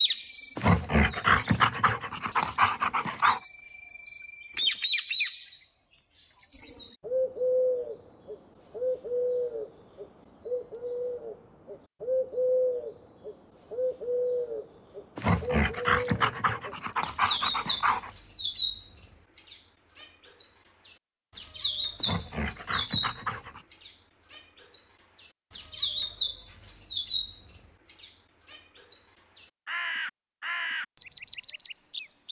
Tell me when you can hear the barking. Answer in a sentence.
You can hear the barking from 0.6 to 3.4 s, from 15.2 to 18.1 s and from 22.0 to 23.6 s.